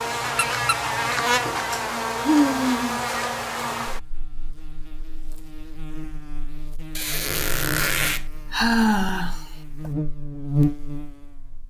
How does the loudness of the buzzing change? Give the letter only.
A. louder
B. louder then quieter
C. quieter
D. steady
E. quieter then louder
E.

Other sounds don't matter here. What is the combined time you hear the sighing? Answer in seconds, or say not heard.
3 s.